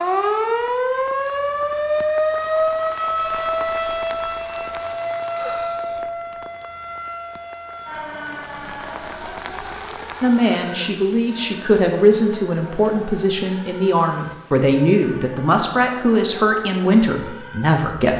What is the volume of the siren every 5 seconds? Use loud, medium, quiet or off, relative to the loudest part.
loud, medium, quiet, quiet.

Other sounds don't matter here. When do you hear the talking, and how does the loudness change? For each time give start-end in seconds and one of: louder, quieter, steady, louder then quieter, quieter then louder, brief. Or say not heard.
10.2-18.1 steady.